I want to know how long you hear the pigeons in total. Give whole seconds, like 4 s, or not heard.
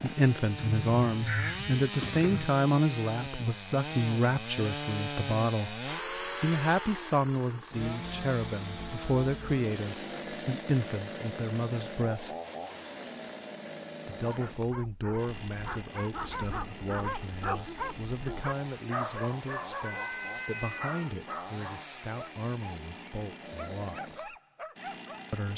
2 s.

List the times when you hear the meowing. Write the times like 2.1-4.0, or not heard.
19.9-21.1.